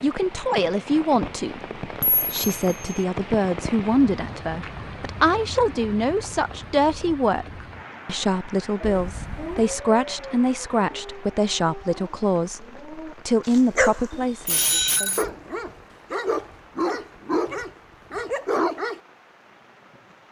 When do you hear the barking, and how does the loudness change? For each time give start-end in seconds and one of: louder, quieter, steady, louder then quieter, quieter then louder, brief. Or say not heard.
8.8-19.0 quieter then louder.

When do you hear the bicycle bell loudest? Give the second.
15 s.